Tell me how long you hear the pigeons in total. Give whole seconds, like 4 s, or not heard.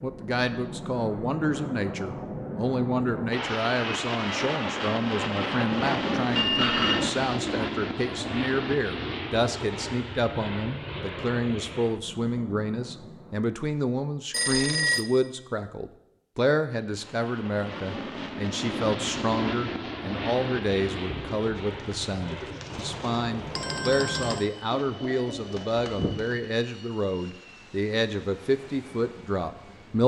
5 s.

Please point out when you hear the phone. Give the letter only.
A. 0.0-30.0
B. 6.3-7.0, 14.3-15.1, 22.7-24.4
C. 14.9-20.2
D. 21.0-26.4
B.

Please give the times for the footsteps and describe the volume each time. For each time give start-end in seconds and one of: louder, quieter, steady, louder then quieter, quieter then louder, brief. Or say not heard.
not heard.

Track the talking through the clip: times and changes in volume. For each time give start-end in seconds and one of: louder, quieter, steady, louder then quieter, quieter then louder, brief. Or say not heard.
0.0-30.0 steady.